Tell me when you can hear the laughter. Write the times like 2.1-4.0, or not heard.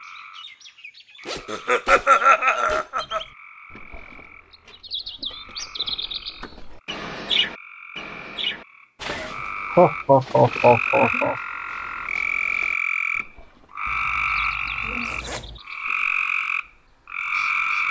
1.4-3.2, 9.1-11.3.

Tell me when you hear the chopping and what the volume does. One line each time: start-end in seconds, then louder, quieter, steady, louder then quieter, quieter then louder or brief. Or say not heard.
not heard.